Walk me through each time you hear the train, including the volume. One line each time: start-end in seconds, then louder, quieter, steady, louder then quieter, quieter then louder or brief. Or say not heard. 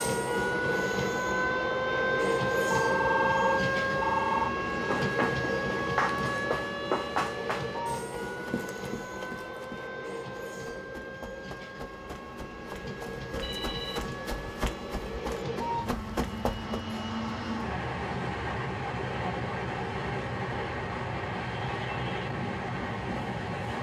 0.0-23.7 quieter then louder.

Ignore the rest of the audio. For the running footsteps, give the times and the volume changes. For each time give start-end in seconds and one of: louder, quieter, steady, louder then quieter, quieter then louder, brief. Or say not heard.
4.7-16.8 quieter then louder.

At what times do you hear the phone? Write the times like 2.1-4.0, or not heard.
2.5-4.5, 13.4-14.1.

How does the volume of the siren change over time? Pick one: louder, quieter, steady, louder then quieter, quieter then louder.
quieter.